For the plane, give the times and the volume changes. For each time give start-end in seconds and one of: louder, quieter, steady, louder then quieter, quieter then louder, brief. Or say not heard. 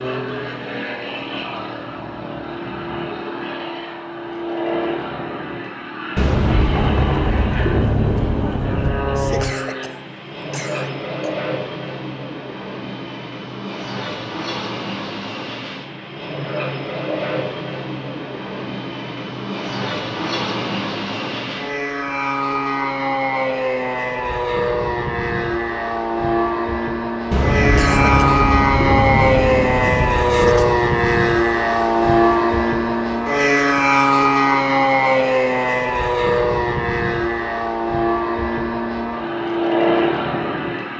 0.0-40.9 louder.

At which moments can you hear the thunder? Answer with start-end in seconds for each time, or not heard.
6.2-9.6, 27.3-30.7.